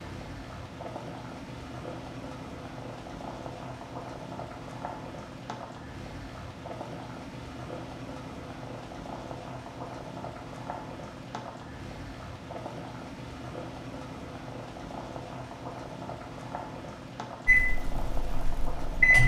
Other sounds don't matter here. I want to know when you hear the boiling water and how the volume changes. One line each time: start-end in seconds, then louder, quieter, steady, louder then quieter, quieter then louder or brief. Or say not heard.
0.0-19.2 steady.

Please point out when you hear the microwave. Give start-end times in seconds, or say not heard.
17.4-19.2.